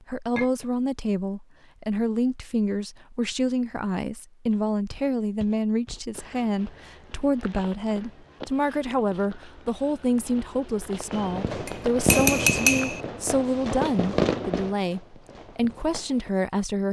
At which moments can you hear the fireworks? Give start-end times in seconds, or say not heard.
11.1-16.3.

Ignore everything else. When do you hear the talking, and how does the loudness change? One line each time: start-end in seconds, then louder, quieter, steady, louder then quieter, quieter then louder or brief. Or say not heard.
0.1-16.8 steady.